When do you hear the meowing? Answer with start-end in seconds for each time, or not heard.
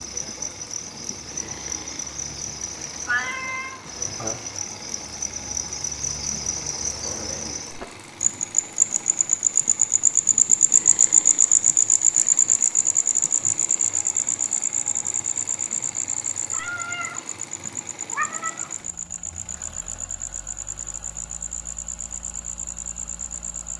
3.0-4.5, 16.5-17.2, 18.1-18.7.